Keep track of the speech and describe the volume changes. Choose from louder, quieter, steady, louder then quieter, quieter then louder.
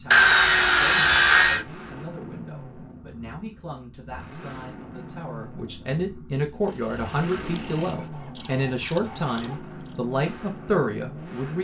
louder.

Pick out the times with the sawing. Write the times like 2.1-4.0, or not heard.
0.1-1.6, 7.5-9.6.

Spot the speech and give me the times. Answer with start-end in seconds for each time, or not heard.
0.0-11.5.